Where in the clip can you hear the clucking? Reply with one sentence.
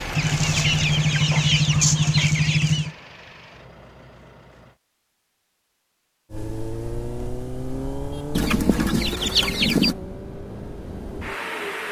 You can hear the clucking from 0.1 to 2.9 s and from 8.3 to 9.9 s.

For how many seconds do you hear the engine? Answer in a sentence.
You can hear the engine for 10 seconds altogether.